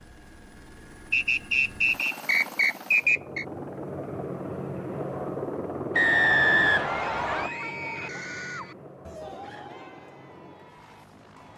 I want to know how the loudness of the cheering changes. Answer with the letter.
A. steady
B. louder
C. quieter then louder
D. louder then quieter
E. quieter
E.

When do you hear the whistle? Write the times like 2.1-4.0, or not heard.
1.1-3.5, 6.0-7.5.